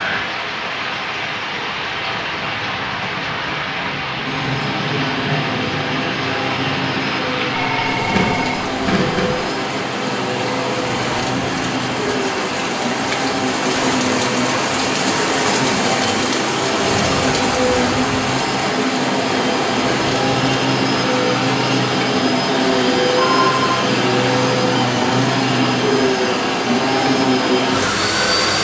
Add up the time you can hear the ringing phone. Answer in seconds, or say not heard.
3 s.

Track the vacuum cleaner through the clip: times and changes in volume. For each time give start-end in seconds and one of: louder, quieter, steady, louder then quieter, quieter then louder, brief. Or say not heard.
4.2-28.5 louder.